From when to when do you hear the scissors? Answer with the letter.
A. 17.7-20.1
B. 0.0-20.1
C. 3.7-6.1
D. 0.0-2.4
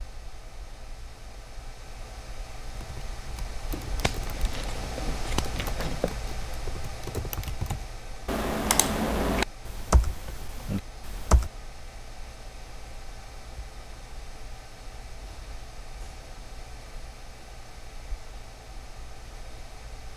C.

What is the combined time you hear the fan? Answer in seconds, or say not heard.
20 s.